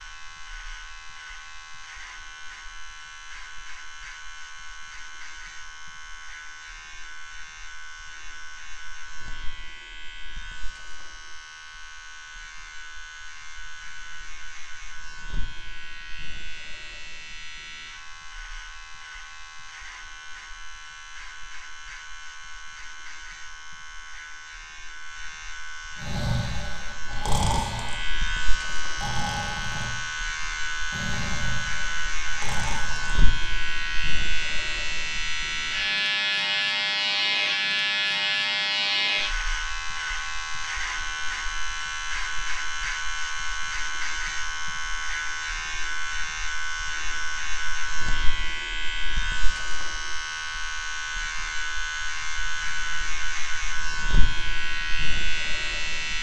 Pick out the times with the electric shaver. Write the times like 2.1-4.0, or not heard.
0.0-56.1.